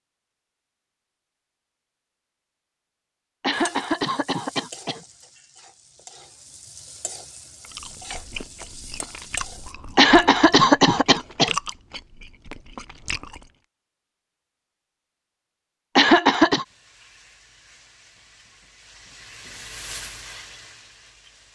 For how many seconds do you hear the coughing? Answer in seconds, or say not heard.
4 s.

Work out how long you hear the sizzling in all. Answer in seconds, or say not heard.
11 s.